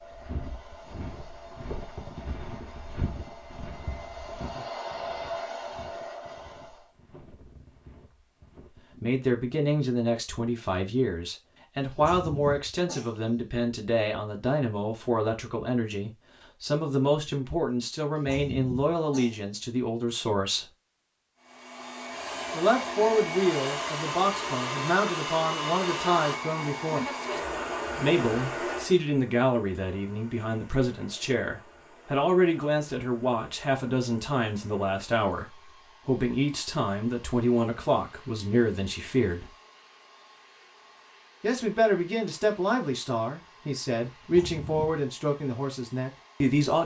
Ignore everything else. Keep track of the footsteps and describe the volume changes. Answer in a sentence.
The volume of the footsteps goes down.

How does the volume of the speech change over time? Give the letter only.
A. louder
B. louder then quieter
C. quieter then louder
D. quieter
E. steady
E.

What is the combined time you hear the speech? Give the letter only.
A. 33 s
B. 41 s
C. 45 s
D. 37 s
A.